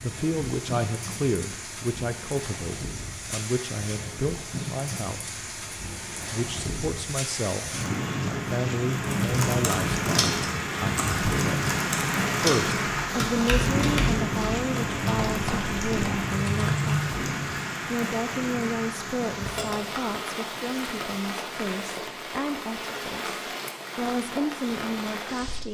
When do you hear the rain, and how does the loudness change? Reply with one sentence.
You can hear the rain from 0.0 to 25.6 s, getting louder then quieter.